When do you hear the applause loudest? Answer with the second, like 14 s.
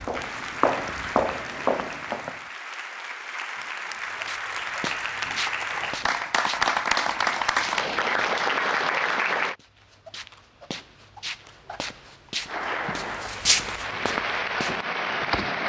7 s.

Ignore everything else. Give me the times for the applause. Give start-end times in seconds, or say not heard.
0.0-9.6, 12.4-15.6.